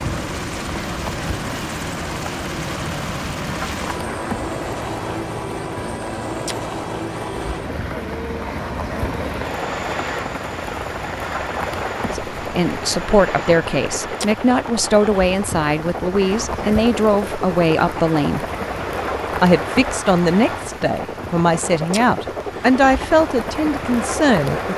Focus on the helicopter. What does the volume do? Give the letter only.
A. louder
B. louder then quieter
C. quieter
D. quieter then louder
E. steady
E.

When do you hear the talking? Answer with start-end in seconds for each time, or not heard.
12.4-18.4, 19.4-24.7.